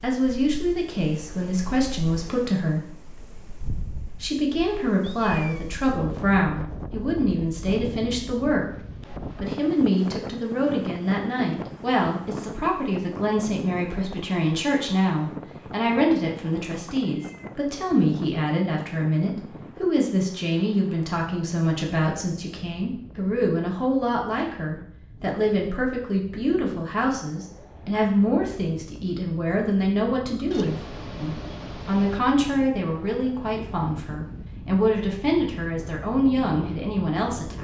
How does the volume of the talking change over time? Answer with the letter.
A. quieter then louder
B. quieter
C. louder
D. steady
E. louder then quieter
D.